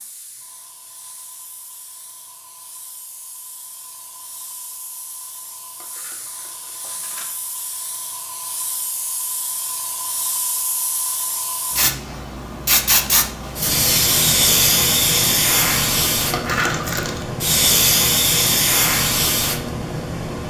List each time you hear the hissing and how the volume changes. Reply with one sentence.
The hissing can be heard from 0.0 to 20.4 s, getting louder.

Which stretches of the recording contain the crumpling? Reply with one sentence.
The crumpling can be heard from 5.8 to 7.3 s and from 16.3 to 17.2 s.